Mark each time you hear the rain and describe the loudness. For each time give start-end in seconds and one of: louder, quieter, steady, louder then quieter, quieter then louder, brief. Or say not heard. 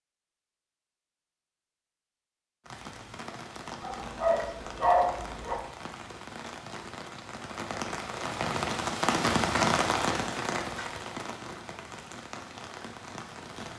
2.6-13.7 louder then quieter.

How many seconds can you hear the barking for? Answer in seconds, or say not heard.
2 s.